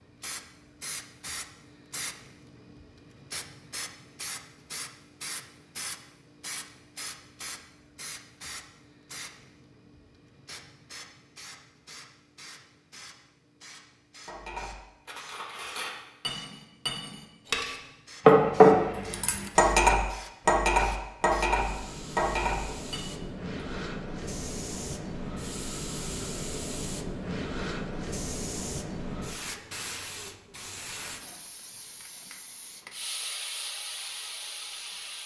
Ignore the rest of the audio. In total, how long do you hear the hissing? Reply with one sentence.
The hissing can be heard for 35 seconds in total.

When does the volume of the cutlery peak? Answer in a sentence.
The loudest moment of the cutlery is at 19 seconds.